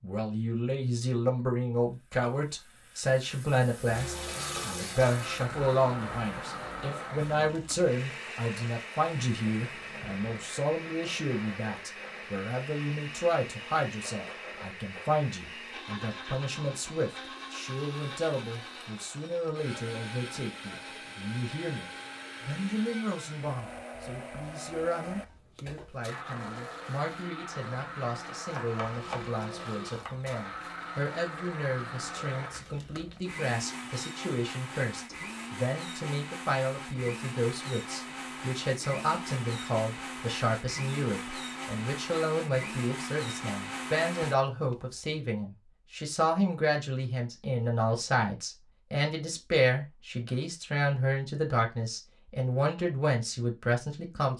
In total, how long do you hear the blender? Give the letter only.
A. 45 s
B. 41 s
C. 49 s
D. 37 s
B.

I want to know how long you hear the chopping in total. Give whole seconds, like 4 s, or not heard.
2 s.